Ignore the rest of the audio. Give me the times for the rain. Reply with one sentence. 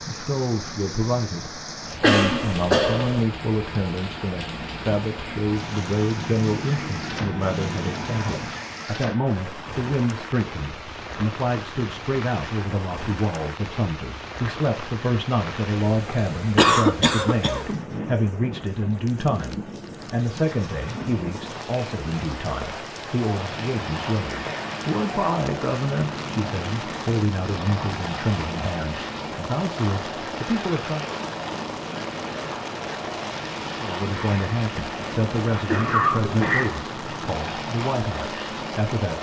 The rain can be heard from 0.0 to 39.1 s.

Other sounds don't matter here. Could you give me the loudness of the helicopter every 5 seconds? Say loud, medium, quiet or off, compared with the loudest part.
medium, loud, off, off, loud, loud, loud, loud.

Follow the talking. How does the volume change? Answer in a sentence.
The loudness of the talking stays about the same.